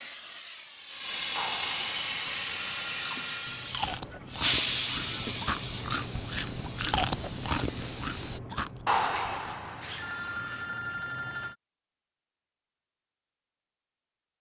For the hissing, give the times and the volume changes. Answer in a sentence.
The hissing can be heard from 0.0 to 8.4 s, getting quieter.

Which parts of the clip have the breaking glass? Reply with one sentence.
You can't hear the breaking glass here.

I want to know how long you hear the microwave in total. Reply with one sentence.
The microwave can't be heard in this clip.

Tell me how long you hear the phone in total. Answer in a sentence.
You can hear the phone for 5 seconds altogether.